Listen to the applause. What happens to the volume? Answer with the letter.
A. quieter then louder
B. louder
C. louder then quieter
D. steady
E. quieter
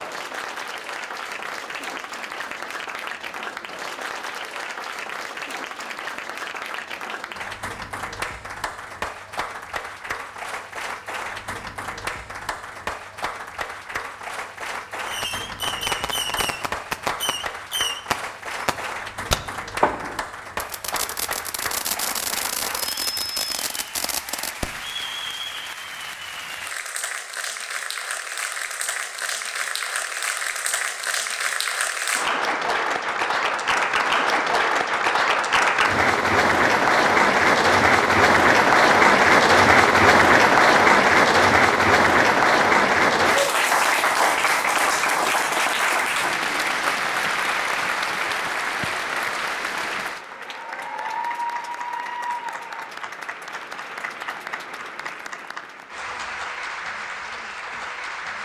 C.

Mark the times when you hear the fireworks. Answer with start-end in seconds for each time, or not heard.
15.1-24.7.